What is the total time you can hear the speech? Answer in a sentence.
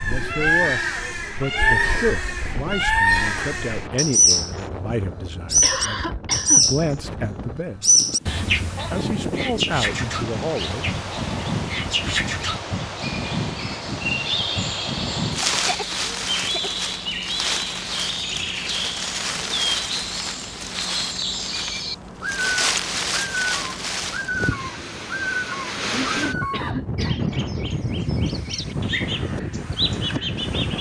The speech can be heard for 10 seconds in total.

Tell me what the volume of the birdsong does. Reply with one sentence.
The loudness of the birdsong goes down.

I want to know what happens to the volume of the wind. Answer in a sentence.
The volume of the wind goes up.